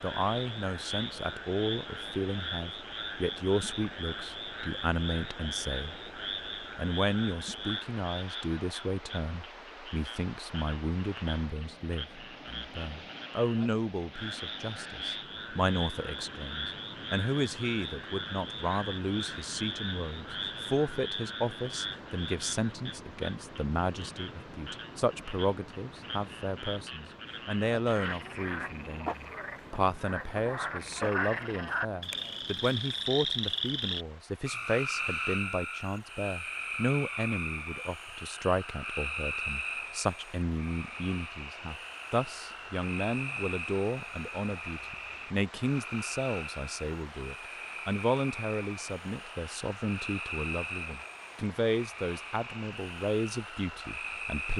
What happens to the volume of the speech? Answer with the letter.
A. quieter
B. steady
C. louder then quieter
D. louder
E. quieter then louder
B.